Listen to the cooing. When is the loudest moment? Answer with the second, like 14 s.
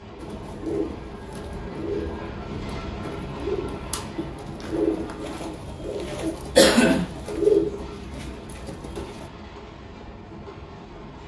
7 s.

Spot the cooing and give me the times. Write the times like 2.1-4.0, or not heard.
0.2-9.2.